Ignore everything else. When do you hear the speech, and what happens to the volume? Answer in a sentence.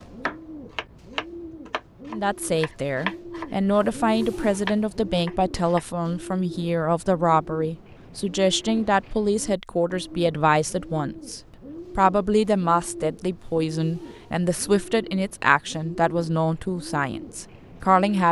The speech can be heard from 2.1 to 18.2 s, at a steady volume.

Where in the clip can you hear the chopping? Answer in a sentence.
You can hear the chopping from 0.0 to 5.8 s.